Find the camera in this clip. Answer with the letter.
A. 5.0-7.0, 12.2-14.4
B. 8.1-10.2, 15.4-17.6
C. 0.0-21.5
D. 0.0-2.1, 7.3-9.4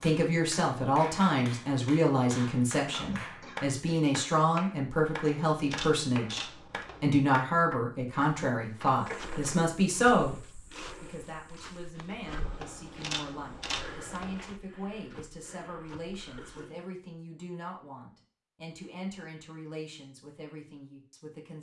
A.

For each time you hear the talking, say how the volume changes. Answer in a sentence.
The talking can be heard from 0.0 to 21.5 s, getting quieter.